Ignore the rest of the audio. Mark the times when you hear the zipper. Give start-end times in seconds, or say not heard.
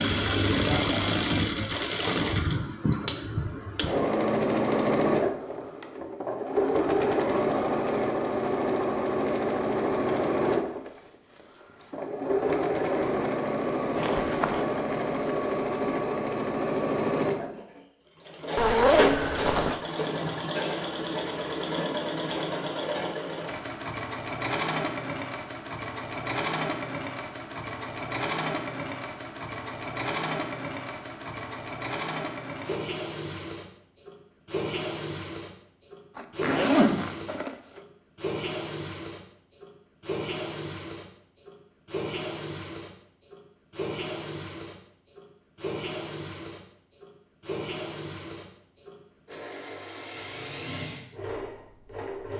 13.9-14.7, 18.6-19.8, 36.1-37.5.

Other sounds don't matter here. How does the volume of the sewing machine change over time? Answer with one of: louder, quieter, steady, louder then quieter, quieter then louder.
quieter.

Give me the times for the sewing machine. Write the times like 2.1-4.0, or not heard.
0.0-52.3.